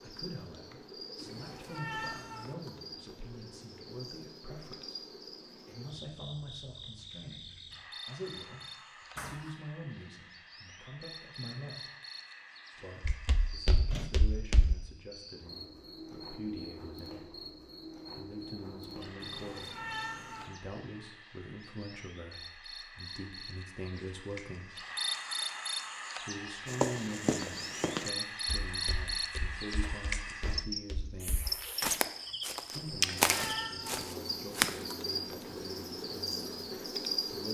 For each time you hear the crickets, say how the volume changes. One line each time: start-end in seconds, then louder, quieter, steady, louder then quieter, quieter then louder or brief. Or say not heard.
0.0-37.4 louder.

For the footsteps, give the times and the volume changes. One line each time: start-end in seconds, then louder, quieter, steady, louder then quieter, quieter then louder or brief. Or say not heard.
13.1-14.8 brief
26.6-34.8 quieter then louder.